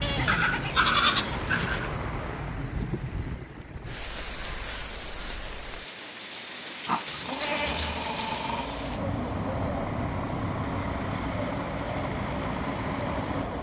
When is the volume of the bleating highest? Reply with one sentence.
The volume of the bleating peaks at 1 second.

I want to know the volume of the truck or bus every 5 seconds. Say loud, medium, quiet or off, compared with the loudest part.
medium, loud, loud.